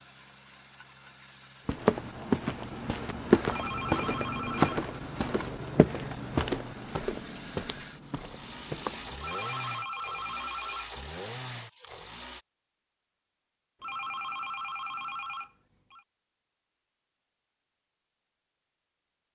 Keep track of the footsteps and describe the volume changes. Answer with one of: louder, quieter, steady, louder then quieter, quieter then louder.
quieter.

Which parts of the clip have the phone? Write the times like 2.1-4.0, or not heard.
3.5-4.8, 9.2-10.9, 13.8-16.1.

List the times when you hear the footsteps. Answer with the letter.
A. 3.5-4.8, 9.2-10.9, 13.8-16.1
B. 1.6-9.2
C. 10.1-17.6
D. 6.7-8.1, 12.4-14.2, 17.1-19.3
B.